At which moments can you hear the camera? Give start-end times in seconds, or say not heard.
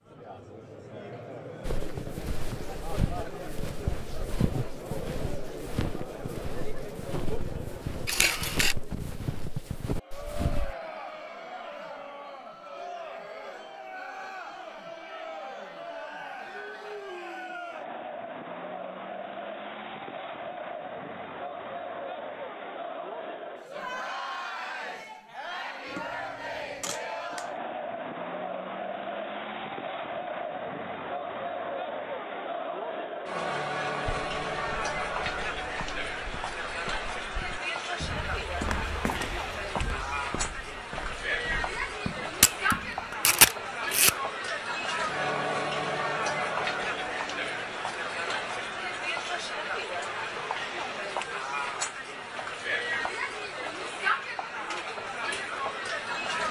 8.1-8.8, 25.9-27.5, 42.4-44.1.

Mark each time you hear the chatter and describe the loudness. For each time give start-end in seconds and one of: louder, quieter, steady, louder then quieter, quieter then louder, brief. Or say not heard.
0.0-56.4 louder.